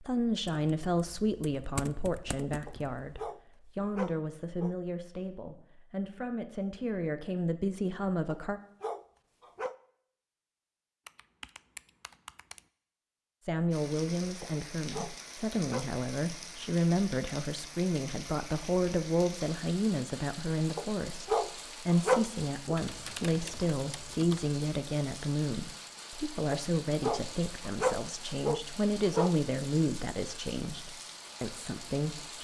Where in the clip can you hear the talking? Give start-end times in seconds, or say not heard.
0.0-8.6, 13.4-32.3.